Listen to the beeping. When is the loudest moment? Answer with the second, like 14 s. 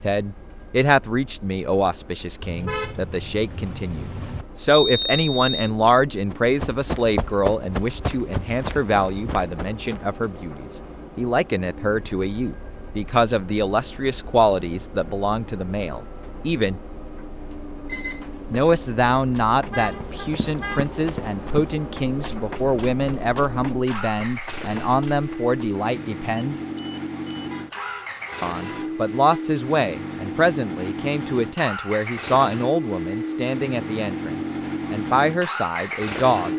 5 s.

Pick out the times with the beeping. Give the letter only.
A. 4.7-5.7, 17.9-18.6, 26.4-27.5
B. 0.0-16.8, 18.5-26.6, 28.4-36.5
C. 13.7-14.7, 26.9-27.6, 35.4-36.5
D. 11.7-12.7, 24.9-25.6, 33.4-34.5
A.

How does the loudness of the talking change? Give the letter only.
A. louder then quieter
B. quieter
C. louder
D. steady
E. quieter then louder
D.